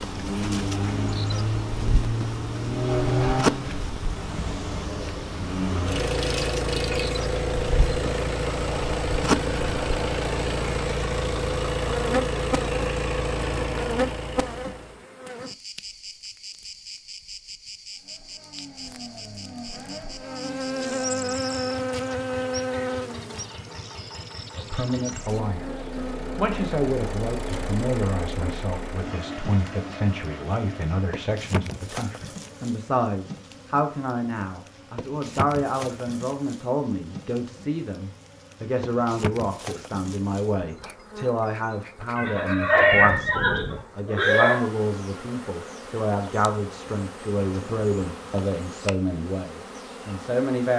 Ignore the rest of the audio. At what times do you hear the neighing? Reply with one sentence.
You can hear the neighing from 42.2 to 44.6 s.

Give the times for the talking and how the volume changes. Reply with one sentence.
You can hear the talking from 24.6 to 50.7 s, at a steady volume.